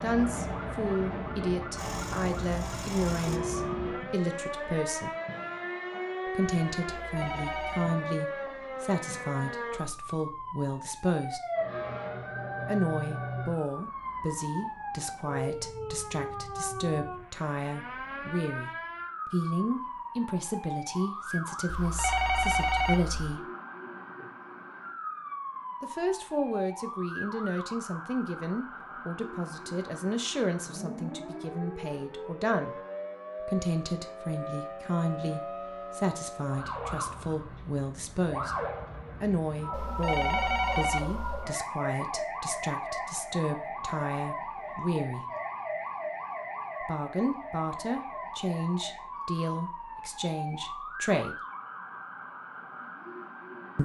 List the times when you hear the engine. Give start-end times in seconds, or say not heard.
1.8-3.4.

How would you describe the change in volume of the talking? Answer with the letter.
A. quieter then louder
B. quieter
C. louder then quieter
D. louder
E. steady
E.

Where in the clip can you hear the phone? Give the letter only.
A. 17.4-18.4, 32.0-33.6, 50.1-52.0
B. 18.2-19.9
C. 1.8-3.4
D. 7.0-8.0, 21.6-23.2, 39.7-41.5
D.